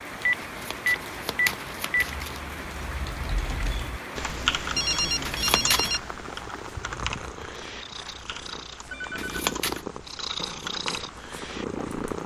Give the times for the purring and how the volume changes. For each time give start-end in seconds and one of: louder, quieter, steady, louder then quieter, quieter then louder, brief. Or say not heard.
6.2-12.2 louder.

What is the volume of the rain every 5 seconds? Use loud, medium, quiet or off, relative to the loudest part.
loud, loud, medium.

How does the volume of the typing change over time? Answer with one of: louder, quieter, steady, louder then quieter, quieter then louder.
louder then quieter.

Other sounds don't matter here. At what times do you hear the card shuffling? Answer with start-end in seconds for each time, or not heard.
0.5-2.4, 5.2-5.9, 9.2-9.8.